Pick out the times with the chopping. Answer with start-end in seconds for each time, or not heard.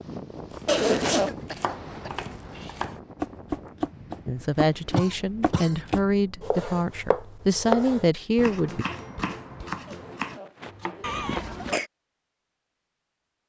0.5-11.6.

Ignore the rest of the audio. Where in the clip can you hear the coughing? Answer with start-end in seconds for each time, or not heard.
1.3-2.8, 5.0-5.8, 11.0-11.9.